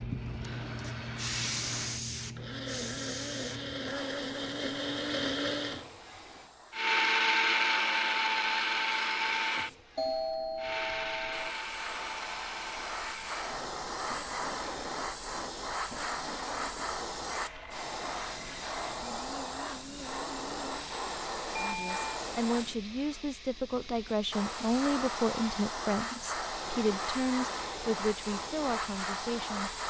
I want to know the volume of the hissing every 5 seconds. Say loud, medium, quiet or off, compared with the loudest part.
loud, quiet, loud, loud, loud, loud.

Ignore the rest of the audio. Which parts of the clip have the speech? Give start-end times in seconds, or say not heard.
21.6-29.8.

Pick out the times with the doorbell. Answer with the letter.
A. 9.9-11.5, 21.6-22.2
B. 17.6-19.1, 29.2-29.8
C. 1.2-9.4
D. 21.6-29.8
A.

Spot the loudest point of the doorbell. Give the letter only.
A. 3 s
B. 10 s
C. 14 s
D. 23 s
B.